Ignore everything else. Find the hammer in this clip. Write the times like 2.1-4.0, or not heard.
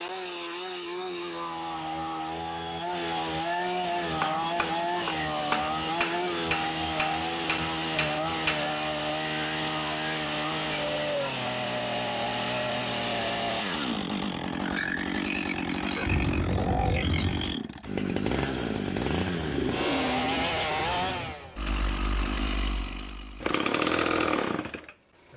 3.9-8.8.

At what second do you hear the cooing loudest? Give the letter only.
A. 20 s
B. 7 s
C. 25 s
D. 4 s
A.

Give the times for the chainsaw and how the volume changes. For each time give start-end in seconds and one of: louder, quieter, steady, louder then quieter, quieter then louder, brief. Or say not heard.
0.0-25.3 steady.